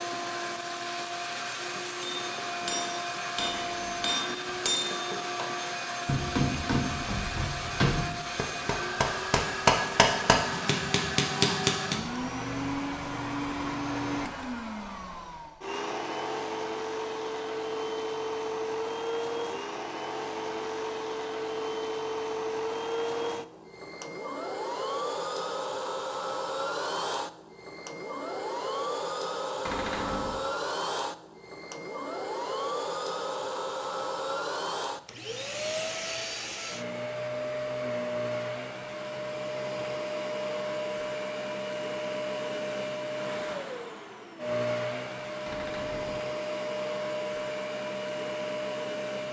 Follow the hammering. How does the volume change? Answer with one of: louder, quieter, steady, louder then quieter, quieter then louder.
louder.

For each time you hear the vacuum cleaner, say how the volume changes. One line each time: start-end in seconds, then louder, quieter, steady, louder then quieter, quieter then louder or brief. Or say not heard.
0.0-49.2 steady.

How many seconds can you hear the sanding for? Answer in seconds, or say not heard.
not heard.